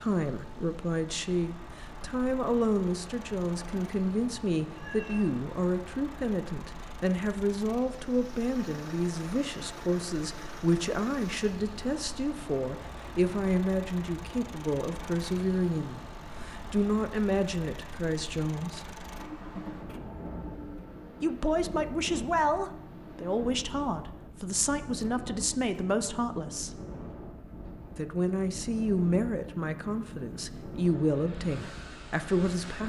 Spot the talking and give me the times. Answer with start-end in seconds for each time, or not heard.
0.0-18.9, 21.2-26.8, 27.9-32.8.